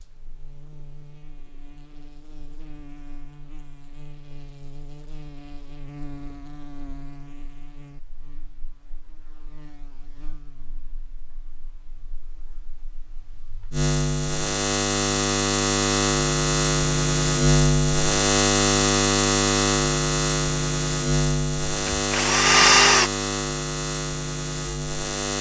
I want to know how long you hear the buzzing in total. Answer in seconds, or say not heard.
25 s.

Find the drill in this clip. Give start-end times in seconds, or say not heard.
21.6-23.1.